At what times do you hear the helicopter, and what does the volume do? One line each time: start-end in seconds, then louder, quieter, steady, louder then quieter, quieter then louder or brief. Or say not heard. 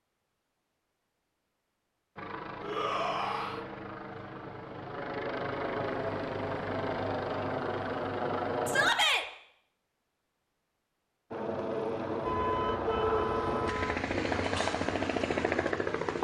2.1-8.9 louder
11.3-16.1 steady.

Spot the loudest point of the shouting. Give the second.
9 s.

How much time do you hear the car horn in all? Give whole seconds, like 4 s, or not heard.
2 s.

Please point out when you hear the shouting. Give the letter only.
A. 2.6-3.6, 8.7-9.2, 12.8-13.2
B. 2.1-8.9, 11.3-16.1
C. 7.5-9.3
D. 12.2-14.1
A.